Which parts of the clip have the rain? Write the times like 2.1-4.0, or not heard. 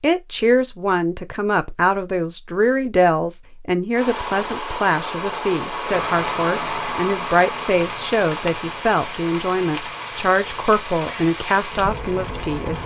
4.0-12.8.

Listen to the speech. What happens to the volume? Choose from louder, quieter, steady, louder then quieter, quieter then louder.
steady.